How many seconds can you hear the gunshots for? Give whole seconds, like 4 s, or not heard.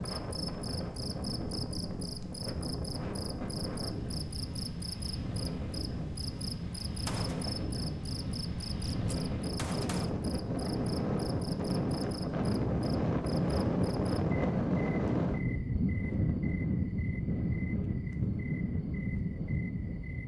2 s.